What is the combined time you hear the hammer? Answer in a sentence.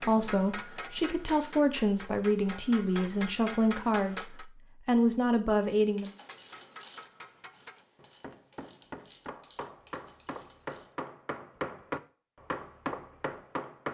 You can hear the hammer for 12 seconds altogether.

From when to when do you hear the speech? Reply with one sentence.
The speech can be heard from 0.0 to 6.1 s.